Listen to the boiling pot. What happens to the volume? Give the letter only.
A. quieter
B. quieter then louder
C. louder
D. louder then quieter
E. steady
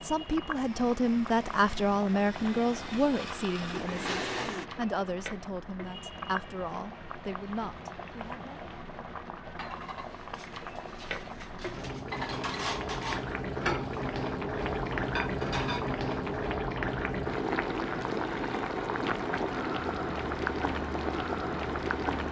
C.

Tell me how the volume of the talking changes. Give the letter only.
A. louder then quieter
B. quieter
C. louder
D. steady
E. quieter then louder
B.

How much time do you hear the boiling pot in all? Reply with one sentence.
You can hear the boiling pot for 22 seconds altogether.